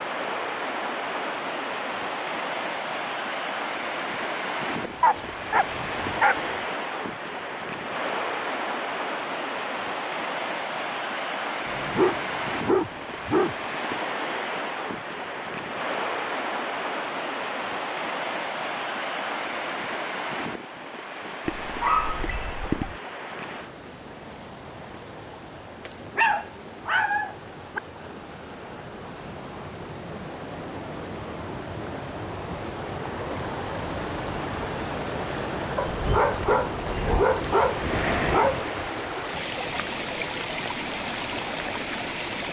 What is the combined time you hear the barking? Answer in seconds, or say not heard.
10 s.